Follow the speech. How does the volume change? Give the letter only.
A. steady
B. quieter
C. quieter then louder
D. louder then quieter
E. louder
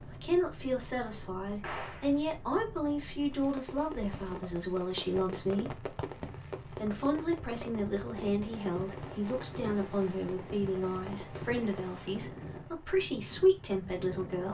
A.